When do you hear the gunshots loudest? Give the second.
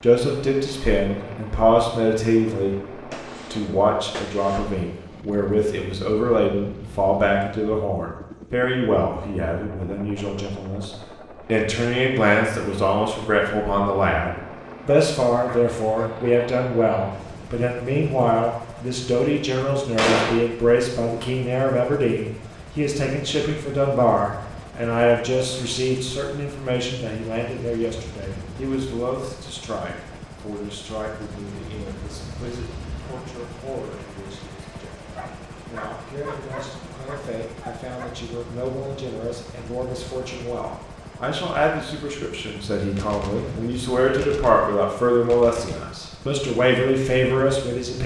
20 s.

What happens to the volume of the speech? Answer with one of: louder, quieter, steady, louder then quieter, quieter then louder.
quieter then louder.